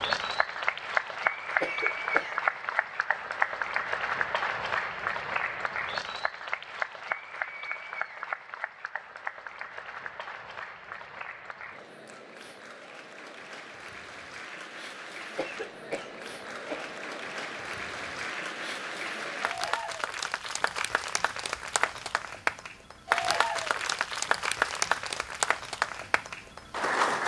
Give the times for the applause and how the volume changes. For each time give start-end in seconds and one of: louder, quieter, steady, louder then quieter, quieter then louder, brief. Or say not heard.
0.0-27.2 quieter then louder.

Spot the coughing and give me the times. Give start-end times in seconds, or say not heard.
1.6-2.4, 15.3-16.9.